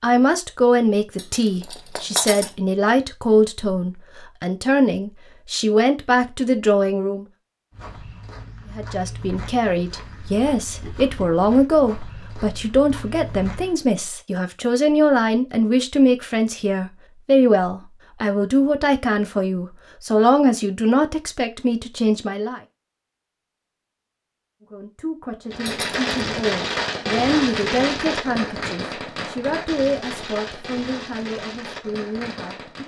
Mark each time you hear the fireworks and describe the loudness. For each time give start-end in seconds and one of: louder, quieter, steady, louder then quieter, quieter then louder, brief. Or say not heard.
25.5-32.8 quieter.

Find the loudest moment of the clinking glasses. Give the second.
2 s.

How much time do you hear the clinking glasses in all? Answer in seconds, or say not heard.
2 s.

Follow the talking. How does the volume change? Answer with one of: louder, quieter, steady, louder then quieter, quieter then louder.
quieter.